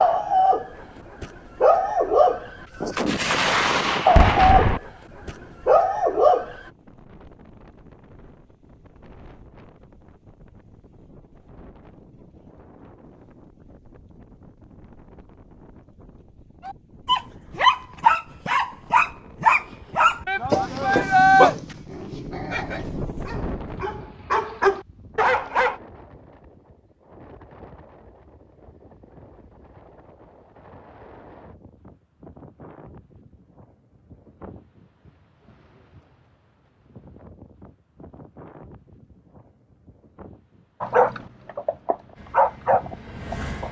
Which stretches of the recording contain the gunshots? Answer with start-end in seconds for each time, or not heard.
2.8-4.8.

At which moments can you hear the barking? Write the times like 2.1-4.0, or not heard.
0.0-6.6, 16.6-25.8, 40.8-43.6.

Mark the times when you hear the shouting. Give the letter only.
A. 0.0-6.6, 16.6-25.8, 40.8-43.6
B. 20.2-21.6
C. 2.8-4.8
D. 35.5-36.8
B.